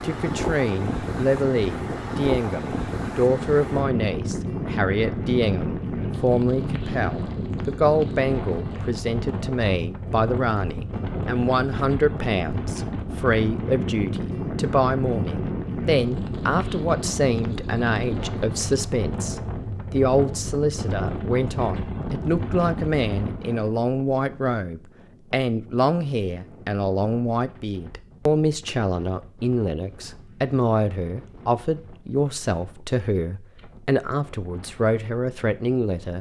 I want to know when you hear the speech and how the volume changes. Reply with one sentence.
The speech can be heard from 0.0 to 36.1 s, at a steady volume.